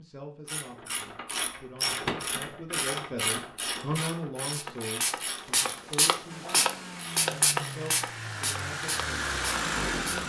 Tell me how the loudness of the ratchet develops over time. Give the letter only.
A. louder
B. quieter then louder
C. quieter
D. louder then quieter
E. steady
C.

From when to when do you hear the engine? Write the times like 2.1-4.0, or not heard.
6.2-10.2.